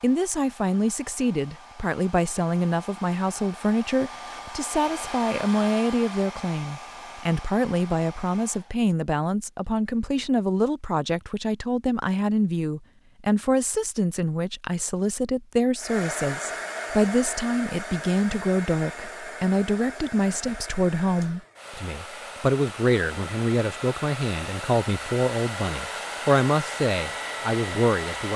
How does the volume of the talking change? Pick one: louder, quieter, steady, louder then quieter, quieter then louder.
steady.